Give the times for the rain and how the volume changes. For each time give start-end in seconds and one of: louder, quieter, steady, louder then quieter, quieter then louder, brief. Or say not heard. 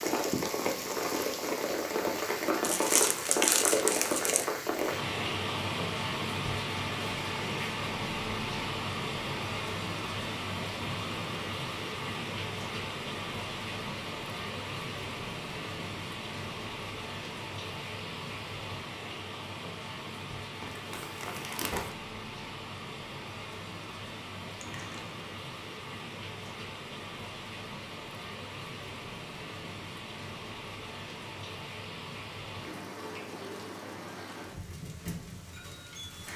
0.0-36.3 quieter.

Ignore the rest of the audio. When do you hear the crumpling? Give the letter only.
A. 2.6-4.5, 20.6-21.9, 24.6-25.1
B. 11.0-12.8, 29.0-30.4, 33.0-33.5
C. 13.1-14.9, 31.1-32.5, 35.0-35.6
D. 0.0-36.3
A.